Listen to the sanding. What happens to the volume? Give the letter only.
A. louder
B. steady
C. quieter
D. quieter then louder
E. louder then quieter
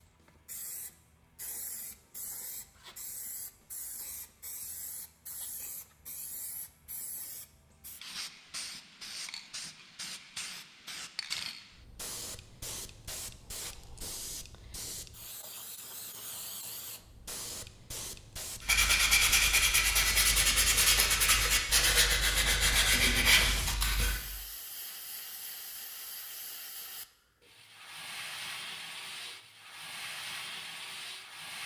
B.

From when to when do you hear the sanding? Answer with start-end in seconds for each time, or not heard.
18.6-24.2.